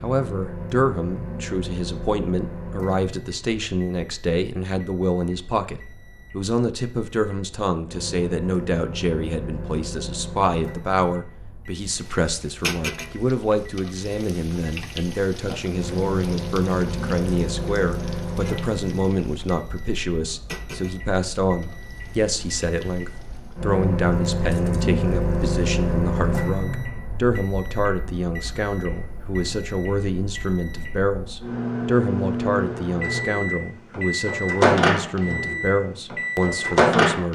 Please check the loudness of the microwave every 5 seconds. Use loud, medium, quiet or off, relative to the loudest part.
quiet, quiet, quiet, medium, medium, medium, loud, loud.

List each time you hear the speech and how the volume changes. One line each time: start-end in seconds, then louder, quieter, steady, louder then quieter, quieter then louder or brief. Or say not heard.
0.0-37.2 steady.